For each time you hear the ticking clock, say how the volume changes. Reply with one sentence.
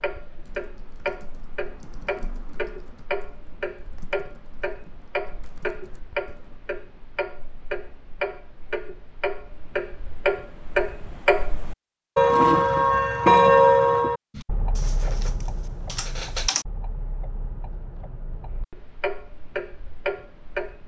You can hear the ticking clock from 0.0 to 20.8 s, getting louder then quieter.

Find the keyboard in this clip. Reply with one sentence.
The keyboard can be heard from 0.4 to 6.6 s and from 14.3 to 16.6 s.